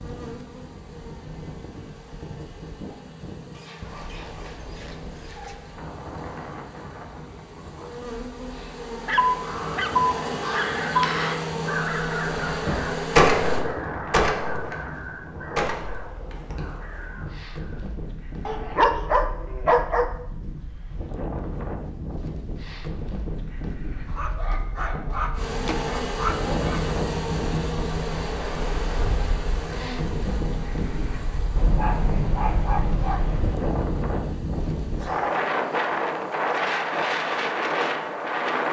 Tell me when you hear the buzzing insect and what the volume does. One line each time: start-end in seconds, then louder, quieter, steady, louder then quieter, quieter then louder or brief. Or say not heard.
0.0-13.7 louder
25.4-38.4 quieter.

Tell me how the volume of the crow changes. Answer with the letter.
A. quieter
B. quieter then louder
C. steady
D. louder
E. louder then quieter
E.